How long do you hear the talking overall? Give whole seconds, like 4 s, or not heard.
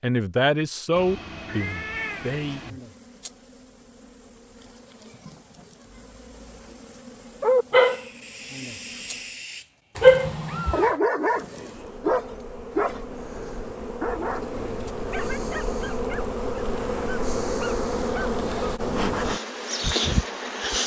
3 s.